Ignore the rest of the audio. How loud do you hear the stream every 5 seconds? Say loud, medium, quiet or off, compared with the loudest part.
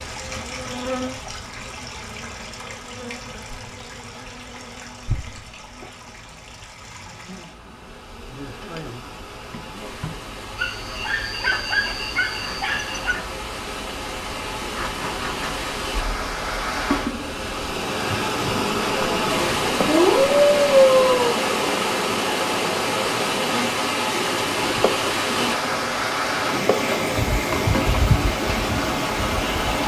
quiet, quiet, medium, loud, loud, loud.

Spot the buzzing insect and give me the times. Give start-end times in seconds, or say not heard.
0.0-29.8.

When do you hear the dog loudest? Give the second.
21 s.